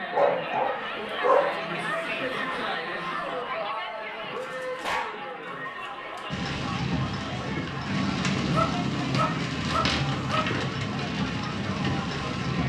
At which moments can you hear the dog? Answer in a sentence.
The dog can be heard from 0.1 to 1.6 s, from 4.3 to 5.2 s, from 5.8 to 6.2 s and from 8.5 to 10.5 s.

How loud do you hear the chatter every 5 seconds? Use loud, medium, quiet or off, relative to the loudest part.
loud, medium, medium.